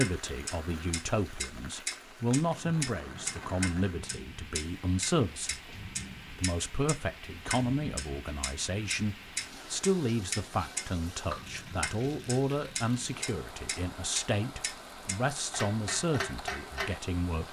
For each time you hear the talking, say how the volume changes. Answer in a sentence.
The talking can be heard from 0.0 to 17.4 s, at a steady volume.